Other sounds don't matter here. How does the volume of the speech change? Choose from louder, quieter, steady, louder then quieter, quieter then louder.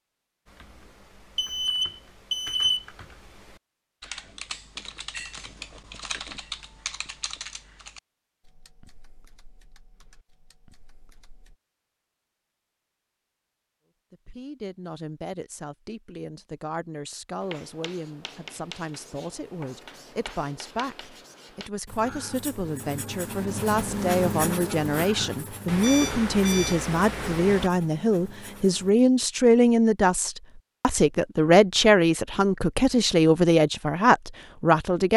louder.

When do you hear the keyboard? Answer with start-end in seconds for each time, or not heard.
0.5-11.6.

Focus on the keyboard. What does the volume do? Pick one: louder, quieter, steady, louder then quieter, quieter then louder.
louder then quieter.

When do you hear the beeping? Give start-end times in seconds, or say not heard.
1.4-2.9, 25.6-27.7.